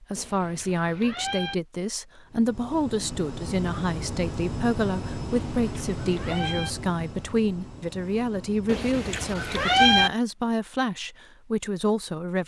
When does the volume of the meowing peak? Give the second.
10 s.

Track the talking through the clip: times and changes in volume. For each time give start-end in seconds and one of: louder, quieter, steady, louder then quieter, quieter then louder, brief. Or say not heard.
0.0-12.4 steady.